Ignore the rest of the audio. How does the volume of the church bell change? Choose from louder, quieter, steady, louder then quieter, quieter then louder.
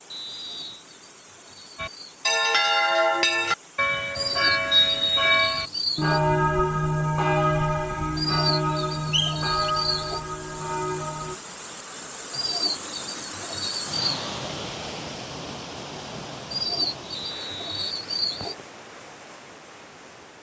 quieter.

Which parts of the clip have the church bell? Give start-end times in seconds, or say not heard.
1.8-11.4.